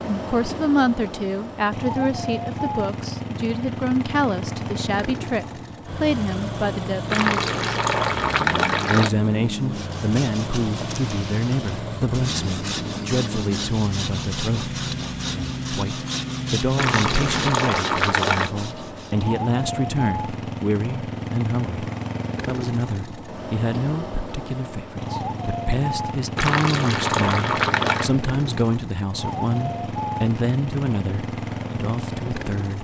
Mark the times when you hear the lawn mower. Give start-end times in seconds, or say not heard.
0.0-32.7.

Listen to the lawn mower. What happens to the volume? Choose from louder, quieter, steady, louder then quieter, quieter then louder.
steady.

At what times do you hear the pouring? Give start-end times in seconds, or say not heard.
7.1-9.1, 16.8-18.5, 26.4-28.1.